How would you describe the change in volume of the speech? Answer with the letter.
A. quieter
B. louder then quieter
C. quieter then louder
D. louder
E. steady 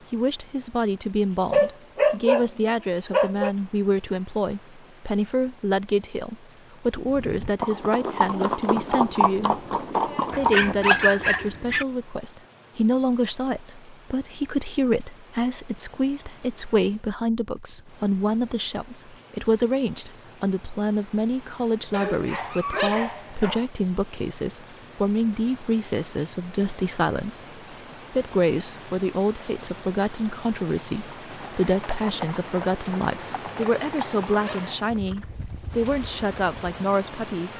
E.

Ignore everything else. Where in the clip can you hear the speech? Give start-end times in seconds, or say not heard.
0.1-37.5.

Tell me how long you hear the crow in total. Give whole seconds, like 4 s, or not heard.
not heard.